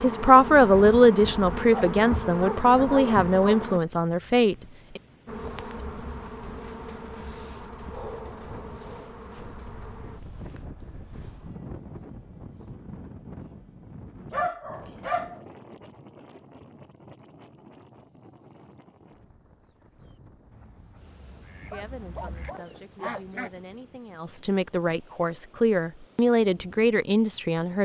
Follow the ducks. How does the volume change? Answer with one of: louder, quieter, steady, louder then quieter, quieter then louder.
louder.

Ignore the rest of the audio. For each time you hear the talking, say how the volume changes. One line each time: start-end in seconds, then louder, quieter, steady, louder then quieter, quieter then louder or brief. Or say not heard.
0.0-5.0 quieter
21.7-27.8 louder.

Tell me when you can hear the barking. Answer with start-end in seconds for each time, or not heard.
1.7-3.6, 7.9-9.2, 14.3-15.4, 21.7-23.2.